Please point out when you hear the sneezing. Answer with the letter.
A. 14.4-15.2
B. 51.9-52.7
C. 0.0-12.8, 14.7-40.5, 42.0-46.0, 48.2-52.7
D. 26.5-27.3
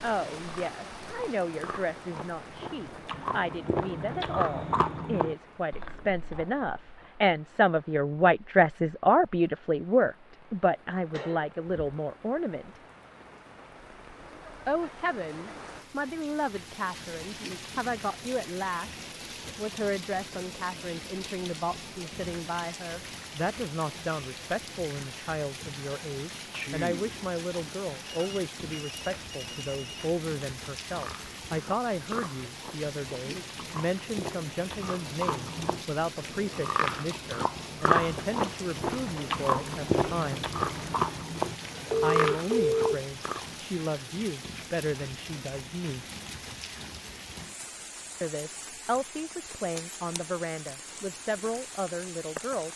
D.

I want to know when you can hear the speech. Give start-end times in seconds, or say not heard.
0.0-12.8, 14.7-40.5, 42.0-46.0, 48.2-52.7.